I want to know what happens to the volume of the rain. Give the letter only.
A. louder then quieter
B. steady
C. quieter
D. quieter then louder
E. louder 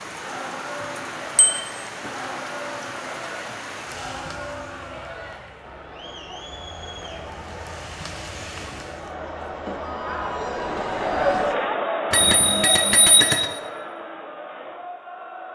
D.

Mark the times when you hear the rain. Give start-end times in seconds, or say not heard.
0.0-9.2.